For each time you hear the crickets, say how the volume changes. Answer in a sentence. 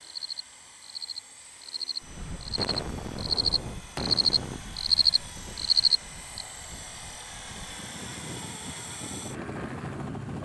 You can hear the crickets from 0.0 to 6.5 s, getting louder.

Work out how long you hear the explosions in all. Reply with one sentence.
You can hear the explosions for 2 seconds altogether.